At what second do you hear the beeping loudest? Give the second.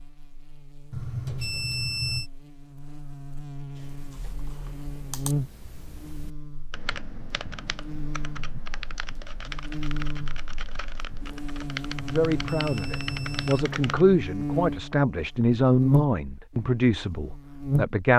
2 s.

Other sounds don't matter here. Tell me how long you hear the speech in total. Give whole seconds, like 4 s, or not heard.
6 s.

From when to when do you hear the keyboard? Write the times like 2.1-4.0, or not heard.
3.8-14.1.